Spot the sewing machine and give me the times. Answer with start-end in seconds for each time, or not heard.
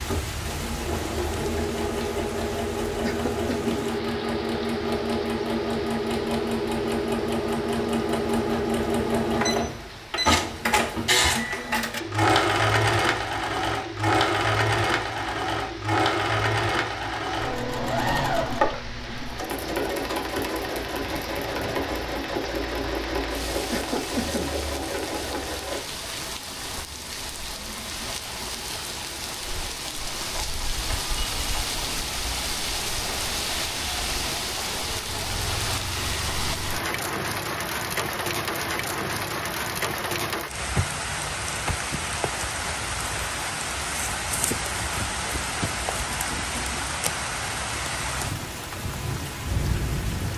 0.0-25.8.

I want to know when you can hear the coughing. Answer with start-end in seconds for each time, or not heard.
3.0-3.9, 23.7-24.6, 46.1-47.0.